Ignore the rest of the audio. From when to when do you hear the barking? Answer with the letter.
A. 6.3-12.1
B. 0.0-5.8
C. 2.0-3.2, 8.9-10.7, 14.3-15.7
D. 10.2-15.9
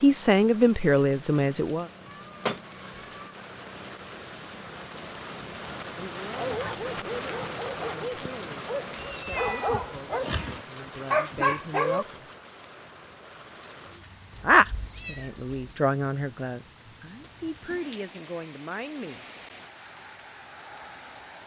A.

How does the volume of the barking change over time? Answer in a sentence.
The loudness of the barking goes up.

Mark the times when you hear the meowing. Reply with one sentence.
You can hear the meowing from 2.0 to 3.2 s, from 8.9 to 10.7 s and from 14.3 to 15.7 s.